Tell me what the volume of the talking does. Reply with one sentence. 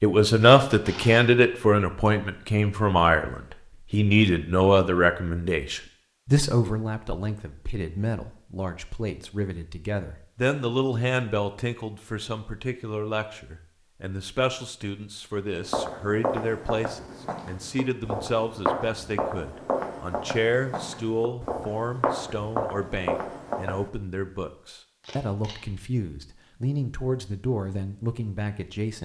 The loudness of the talking goes down.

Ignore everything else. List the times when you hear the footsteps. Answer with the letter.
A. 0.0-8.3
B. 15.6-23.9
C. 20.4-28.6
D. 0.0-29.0
B.